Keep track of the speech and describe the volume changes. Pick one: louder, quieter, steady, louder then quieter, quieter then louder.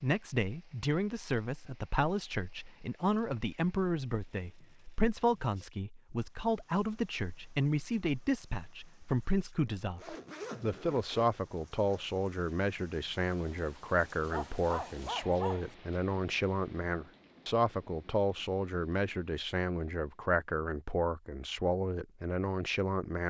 steady.